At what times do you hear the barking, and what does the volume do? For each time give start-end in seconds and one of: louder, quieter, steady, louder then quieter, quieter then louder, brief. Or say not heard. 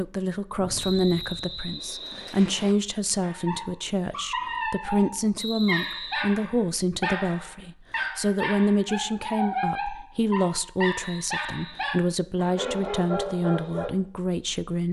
3.2-13.9 steady.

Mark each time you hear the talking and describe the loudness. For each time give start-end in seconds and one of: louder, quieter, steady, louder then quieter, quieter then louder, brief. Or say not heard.
0.0-14.8 steady.